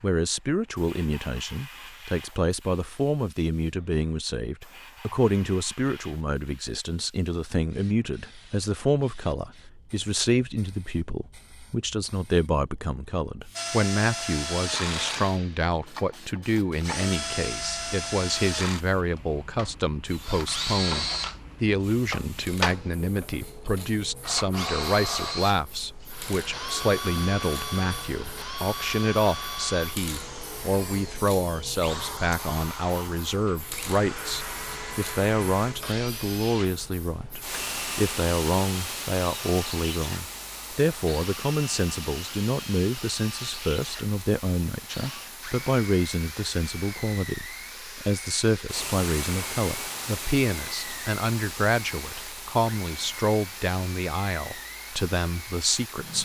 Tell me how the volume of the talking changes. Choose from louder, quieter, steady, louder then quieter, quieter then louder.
steady.